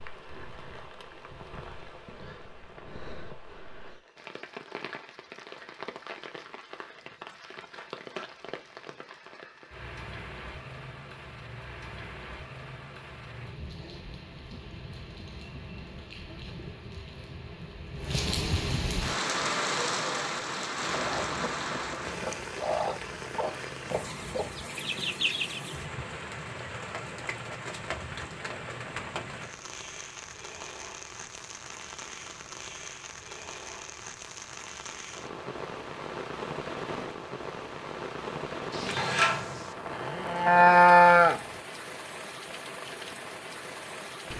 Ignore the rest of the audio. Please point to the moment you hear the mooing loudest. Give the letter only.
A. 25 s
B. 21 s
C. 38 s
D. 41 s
D.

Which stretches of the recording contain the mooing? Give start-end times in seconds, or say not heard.
38.8-41.4.